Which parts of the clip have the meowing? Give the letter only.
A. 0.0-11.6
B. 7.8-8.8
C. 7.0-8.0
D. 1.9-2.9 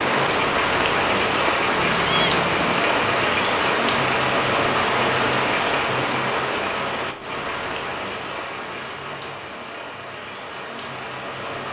D.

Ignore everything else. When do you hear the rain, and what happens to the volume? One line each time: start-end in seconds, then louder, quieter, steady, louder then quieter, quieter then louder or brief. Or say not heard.
0.0-11.6 quieter.